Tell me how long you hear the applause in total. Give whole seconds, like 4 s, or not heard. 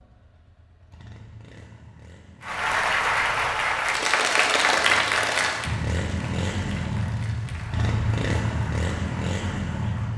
8 s.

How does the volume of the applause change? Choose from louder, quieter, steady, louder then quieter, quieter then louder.
quieter.